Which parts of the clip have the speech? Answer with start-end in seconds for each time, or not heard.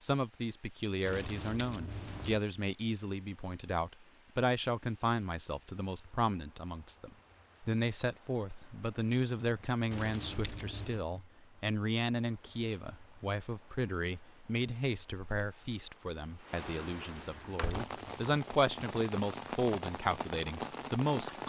0.0-21.4.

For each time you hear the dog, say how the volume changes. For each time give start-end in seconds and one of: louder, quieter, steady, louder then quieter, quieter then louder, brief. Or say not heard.
not heard.